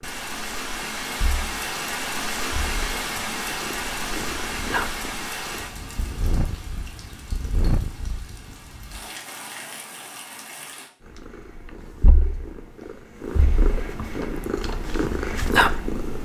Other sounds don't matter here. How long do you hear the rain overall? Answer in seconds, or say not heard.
11 s.